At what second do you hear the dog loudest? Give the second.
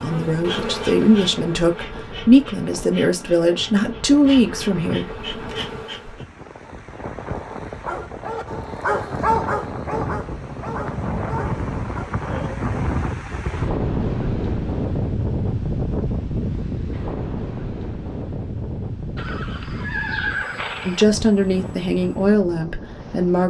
9 s.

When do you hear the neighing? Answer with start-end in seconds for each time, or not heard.
19.1-21.1.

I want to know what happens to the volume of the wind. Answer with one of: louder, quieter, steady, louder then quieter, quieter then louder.
louder then quieter.